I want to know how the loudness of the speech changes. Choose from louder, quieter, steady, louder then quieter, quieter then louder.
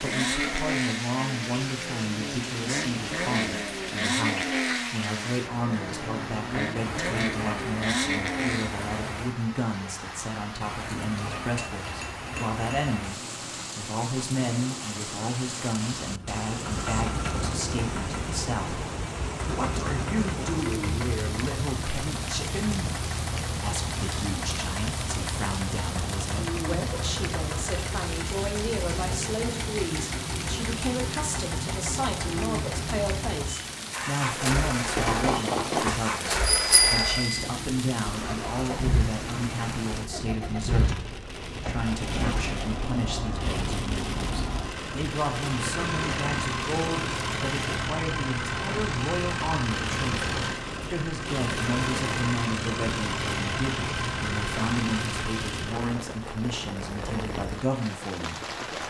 steady.